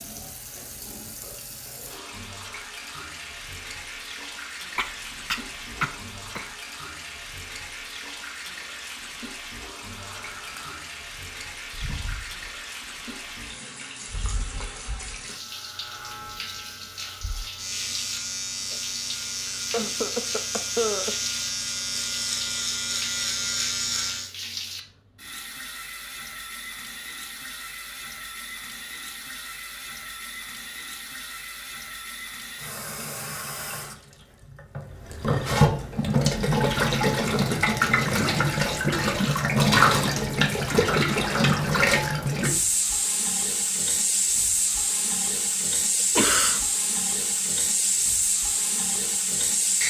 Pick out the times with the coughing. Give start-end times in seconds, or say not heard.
4.8-6.5, 19.5-21.1, 46.1-46.6.